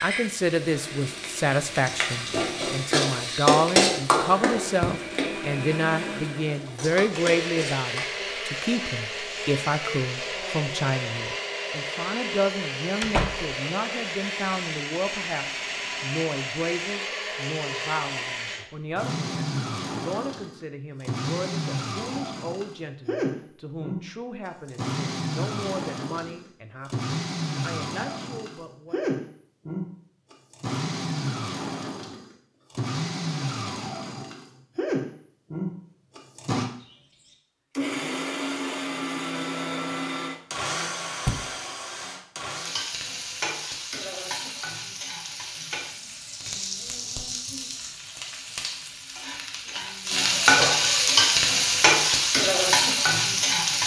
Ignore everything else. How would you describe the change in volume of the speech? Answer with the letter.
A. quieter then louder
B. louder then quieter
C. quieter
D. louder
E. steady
C.